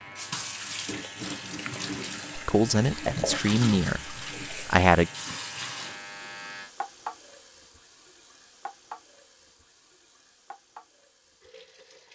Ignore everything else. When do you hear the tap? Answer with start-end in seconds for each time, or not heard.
0.1-12.1.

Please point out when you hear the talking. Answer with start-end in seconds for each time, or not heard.
2.4-5.1.